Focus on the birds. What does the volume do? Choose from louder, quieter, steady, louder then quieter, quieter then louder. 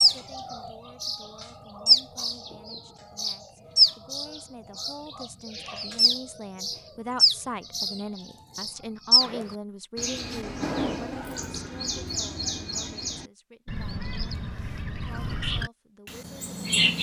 quieter.